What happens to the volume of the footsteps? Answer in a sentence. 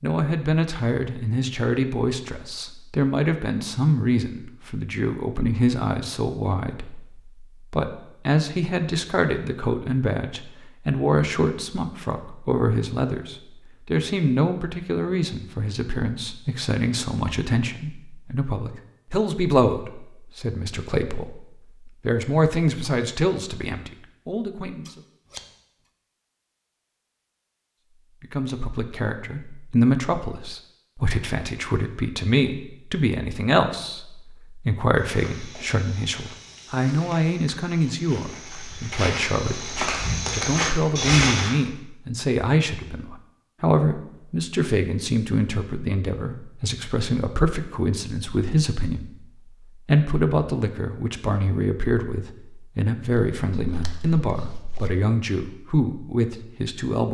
The volume of the footsteps goes up.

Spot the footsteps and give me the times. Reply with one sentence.
You can hear the footsteps from 35.0 to 41.5 s.